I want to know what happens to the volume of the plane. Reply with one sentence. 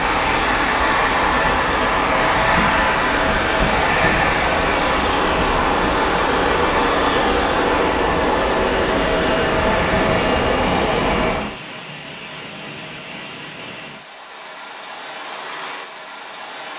The loudness of the plane stays about the same.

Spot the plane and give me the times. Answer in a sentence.
The plane can be heard from 0.0 to 11.6 s.